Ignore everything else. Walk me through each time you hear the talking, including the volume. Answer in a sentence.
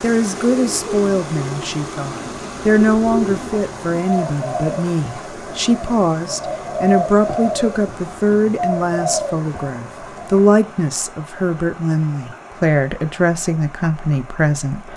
The talking can be heard from 0.0 to 14.9 s, at a steady volume.